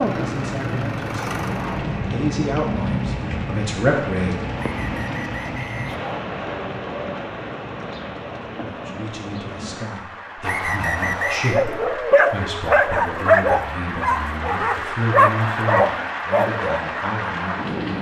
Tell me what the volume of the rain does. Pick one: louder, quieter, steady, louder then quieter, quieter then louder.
quieter then louder.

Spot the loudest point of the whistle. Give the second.
11 s.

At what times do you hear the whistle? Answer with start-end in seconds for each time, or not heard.
4.5-6.0, 10.4-11.7.